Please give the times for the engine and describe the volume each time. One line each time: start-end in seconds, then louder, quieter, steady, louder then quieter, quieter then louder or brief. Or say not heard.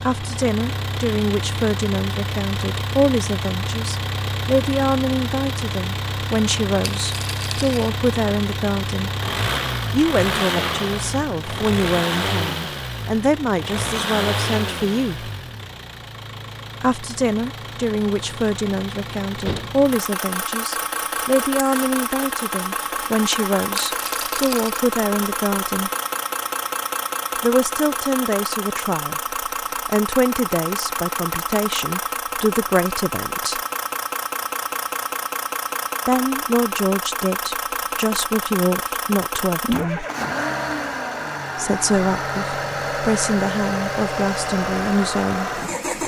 0.0-46.0 steady.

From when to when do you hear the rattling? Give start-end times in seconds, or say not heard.
6.9-7.9, 23.8-24.8.